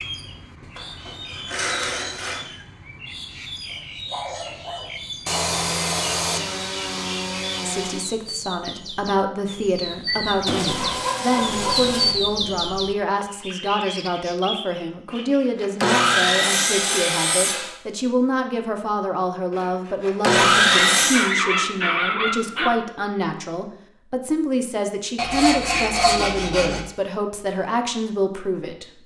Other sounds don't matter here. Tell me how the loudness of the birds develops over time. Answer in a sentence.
The loudness of the birds goes up, then down.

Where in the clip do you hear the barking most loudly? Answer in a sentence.
The loudest moment of the barking is at 21 seconds.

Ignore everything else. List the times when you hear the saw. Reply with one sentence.
You can hear the saw from 0.8 to 2.5 s, from 5.2 to 8.1 s, from 10.4 to 12.2 s, from 15.1 to 17.8 s, from 19.5 to 21.3 s and from 25.1 to 26.8 s.